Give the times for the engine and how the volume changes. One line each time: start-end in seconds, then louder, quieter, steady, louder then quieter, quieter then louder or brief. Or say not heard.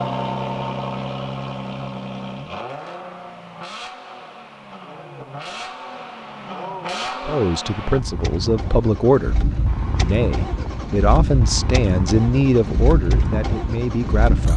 0.0-14.5 quieter then louder.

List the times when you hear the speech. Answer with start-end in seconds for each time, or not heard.
7.2-14.5.